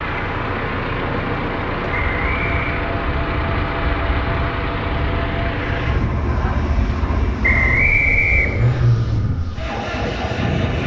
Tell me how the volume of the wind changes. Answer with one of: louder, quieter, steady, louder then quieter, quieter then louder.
steady.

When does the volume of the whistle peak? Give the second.
8 s.